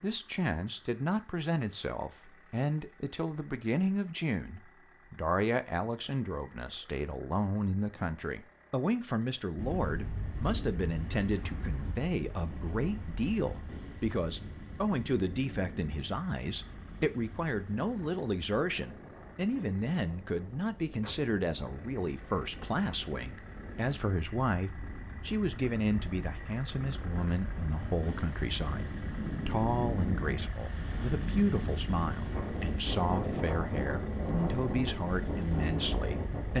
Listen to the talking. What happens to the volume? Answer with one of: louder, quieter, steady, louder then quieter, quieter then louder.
steady.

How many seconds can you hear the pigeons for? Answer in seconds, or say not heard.
not heard.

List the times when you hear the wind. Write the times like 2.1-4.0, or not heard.
9.6-36.5.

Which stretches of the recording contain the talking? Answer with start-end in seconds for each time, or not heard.
0.0-36.5.